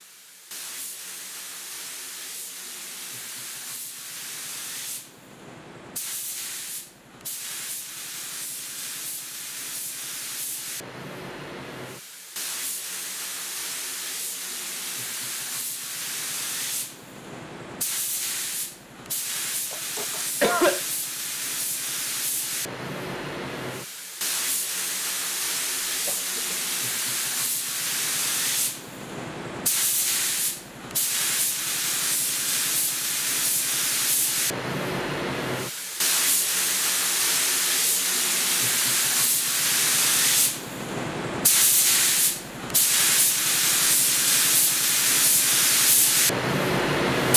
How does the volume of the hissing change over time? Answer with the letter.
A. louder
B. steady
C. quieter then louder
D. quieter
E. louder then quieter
A.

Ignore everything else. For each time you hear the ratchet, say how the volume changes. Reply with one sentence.
You can't hear the ratchet here.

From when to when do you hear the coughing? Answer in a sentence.
The coughing can be heard from 19.7 to 20.8 s and from 26.1 to 26.7 s.